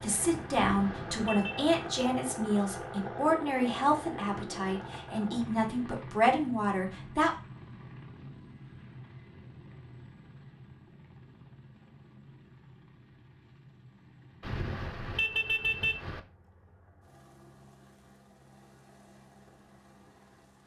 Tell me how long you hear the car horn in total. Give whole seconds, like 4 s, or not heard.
3 s.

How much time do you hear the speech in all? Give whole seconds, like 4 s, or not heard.
7 s.